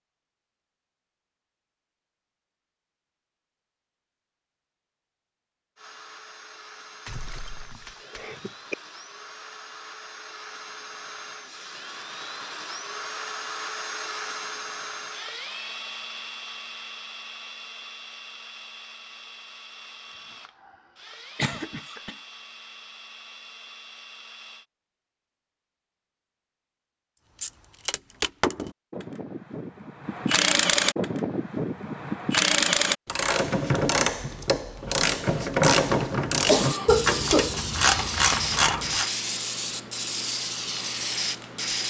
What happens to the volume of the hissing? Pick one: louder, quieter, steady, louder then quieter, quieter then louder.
steady.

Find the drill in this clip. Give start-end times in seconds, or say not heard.
5.8-24.6.